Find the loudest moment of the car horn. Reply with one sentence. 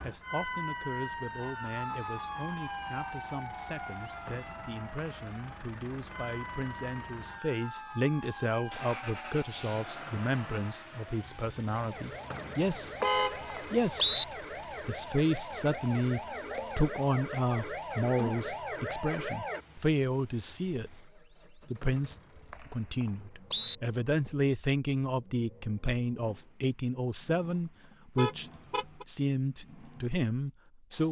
The loudest moment of the car horn is at 13 seconds.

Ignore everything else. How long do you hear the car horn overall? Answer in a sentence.
The car horn can be heard for 2 seconds in total.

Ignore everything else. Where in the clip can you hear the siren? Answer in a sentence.
You can hear the siren from 0.0 to 19.6 s.